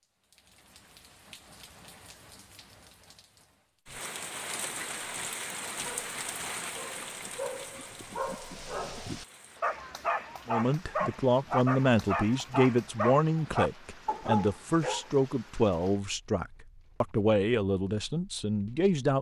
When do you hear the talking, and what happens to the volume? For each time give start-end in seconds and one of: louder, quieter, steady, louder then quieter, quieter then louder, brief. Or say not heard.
10.4-19.1 steady.